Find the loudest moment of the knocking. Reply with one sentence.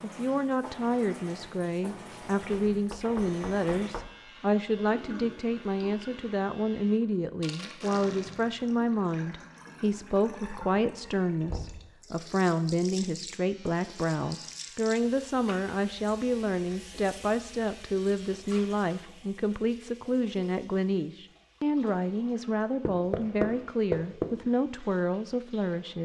The volume of the knocking peaks at 24 seconds.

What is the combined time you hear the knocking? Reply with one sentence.
You can hear the knocking for 3 seconds altogether.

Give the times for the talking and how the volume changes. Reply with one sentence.
The talking can be heard from 0.0 to 26.0 s, at a steady volume.